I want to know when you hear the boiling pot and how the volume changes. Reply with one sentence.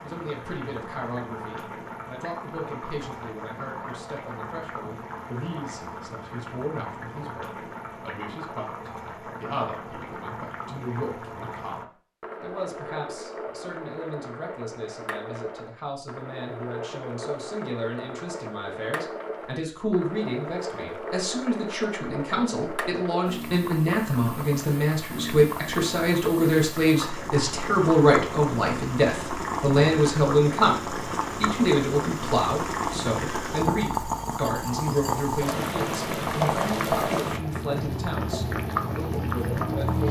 The boiling pot can be heard from 0.0 to 40.0 s, getting louder.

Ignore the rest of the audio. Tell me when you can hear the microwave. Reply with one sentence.
The microwave can't be heard in this clip.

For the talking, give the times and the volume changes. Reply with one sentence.
You can hear the talking from 0.0 to 30.8 s, getting louder; and from 31.4 to 40.0 s, getting quieter.